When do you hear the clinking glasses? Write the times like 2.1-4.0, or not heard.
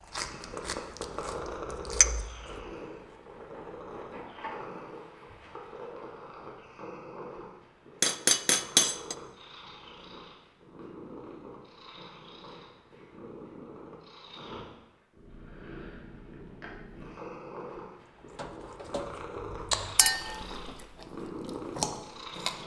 8.0-9.2, 19.9-20.4.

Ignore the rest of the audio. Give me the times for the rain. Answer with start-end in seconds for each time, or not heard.
not heard.